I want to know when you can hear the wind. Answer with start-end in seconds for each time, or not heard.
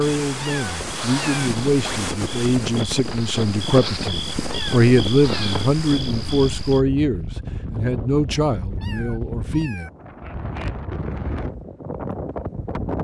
0.0-13.0.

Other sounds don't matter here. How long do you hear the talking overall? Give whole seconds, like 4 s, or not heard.
10 s.